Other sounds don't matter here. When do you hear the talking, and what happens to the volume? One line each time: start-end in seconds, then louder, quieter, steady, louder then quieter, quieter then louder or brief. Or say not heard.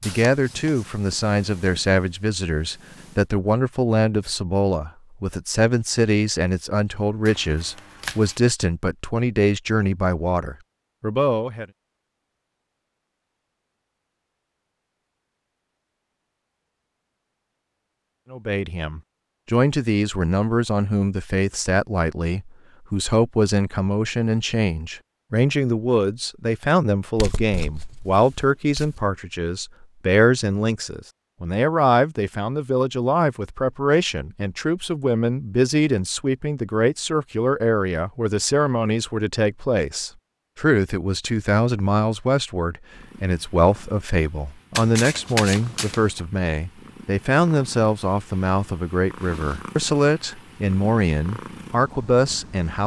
0.0-11.7 steady
18.3-52.8 steady.